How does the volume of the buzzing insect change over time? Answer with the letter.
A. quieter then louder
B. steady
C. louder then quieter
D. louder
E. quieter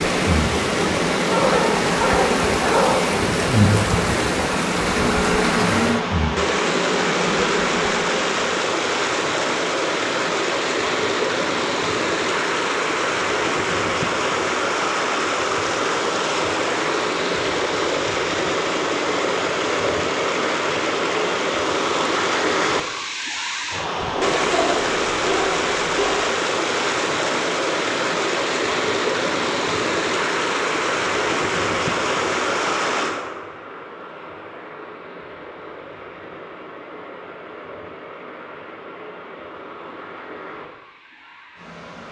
B.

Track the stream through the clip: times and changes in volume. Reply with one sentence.
You can hear the stream from 0.0 to 42.0 s, getting quieter.